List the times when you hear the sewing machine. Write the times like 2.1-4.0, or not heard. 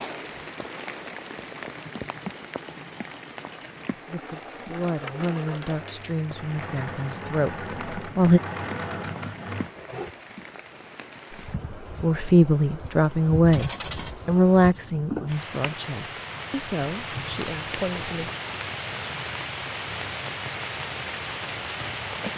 0.2-10.2.